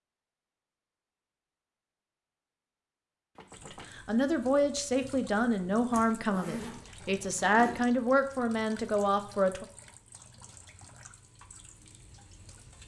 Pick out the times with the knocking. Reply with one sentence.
The knocking can be heard from 3.4 to 4.0 s.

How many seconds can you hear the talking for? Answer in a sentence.
You can hear the talking for 6 seconds altogether.